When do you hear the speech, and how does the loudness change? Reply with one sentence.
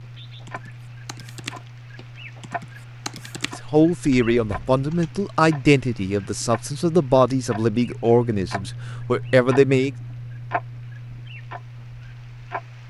The speech can be heard from 3.6 to 9.9 s, at a steady volume.